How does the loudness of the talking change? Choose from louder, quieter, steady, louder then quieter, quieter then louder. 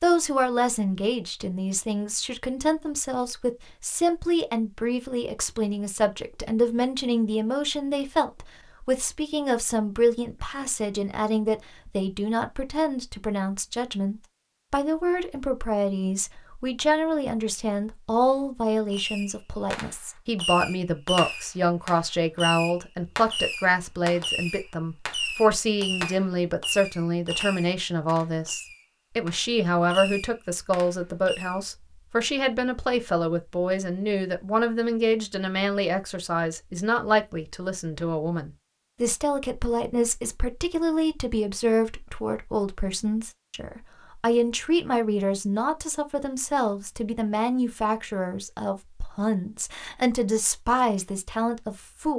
steady.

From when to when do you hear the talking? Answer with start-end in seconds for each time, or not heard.
0.0-52.1.